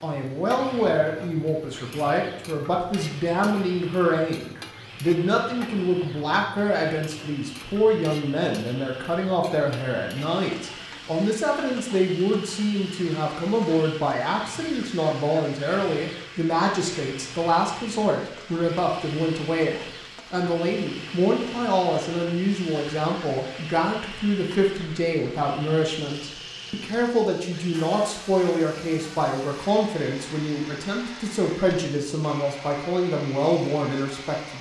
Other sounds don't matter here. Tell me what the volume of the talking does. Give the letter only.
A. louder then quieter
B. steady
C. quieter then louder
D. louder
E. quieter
B.